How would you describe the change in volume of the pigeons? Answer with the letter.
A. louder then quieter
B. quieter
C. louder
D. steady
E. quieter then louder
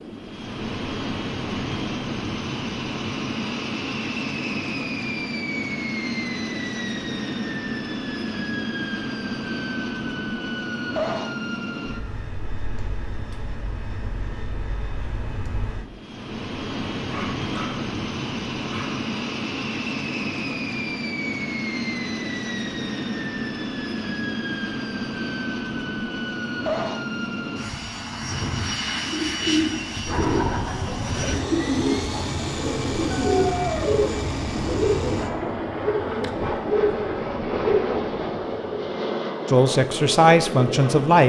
D.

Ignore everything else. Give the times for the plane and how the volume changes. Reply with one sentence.
You can hear the plane from 0.0 to 41.2 s, at a steady volume.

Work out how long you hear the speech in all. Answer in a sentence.
The speech can be heard for 2 seconds in total.